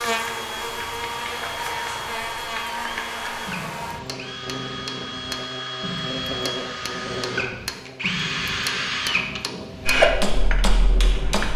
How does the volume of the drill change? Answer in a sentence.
The loudness of the drill goes up.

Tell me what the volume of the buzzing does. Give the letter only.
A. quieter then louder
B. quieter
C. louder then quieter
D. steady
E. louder
B.